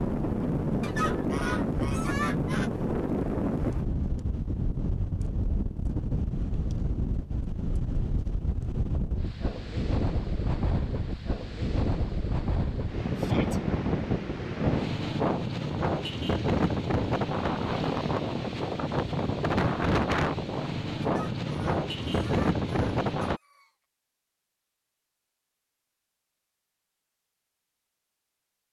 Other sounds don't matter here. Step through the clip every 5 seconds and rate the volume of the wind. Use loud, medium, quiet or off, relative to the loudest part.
loud, medium, loud, loud, loud, off.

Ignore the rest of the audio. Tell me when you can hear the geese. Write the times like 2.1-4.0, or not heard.
0.8-2.7, 21.0-23.7.